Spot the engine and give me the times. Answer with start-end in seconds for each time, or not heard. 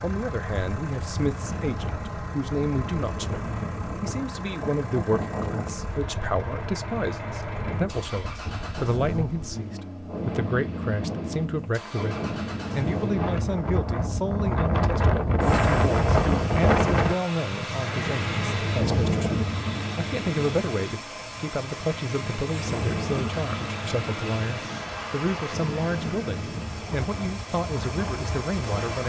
0.0-29.0.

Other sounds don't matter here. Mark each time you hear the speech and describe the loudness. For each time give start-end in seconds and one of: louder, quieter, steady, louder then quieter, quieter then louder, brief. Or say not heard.
0.0-29.0 steady.